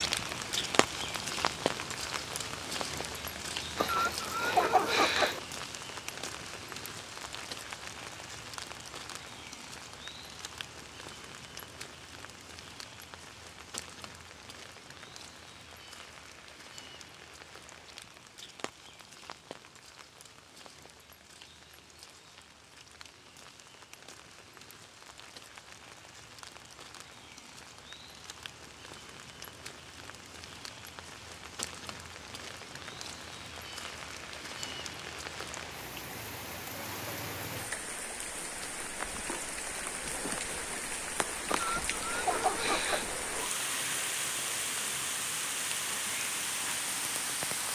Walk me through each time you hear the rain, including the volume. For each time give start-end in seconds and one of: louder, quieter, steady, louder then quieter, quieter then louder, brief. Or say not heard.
0.0-47.7 quieter then louder.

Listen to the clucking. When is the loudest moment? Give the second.
5 s.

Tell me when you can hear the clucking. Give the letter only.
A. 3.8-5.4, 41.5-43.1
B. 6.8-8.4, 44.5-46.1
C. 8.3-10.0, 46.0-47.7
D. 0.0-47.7
A.